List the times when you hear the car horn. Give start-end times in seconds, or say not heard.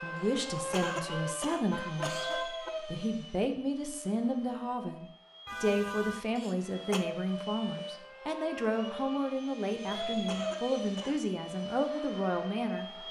0.8-2.7, 5.5-6.2, 9.8-10.6.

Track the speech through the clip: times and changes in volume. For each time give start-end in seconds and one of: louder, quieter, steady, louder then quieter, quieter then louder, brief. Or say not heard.
0.0-12.8 steady.